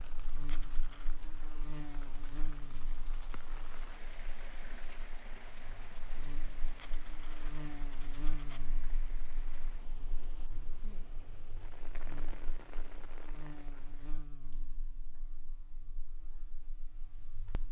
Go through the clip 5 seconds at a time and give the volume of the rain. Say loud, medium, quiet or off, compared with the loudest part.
loud, loud, loud, off.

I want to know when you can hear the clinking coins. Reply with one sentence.
You can hear the clinking coins from 0.3 to 1.1 s, from 6.7 to 8.6 s and from 14.4 to 15.2 s.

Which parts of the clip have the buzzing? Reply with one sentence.
You can hear the buzzing from 0.0 to 17.6 s.